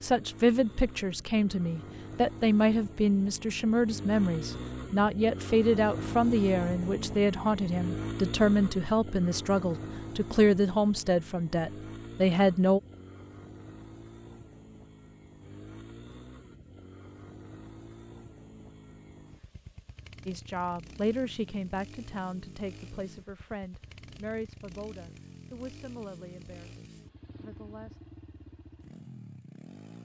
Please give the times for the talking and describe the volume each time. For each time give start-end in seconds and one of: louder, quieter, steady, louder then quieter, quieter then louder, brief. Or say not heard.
0.0-12.8 steady
20.2-28.0 quieter.